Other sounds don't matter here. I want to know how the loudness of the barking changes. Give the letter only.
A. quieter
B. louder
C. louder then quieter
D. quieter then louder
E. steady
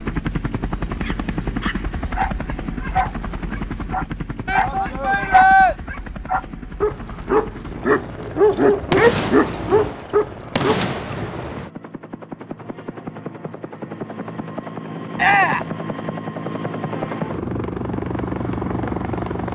B.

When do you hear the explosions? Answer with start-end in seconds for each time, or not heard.
8.9-11.7.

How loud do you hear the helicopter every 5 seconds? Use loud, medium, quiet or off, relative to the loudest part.
loud, medium, medium, loud.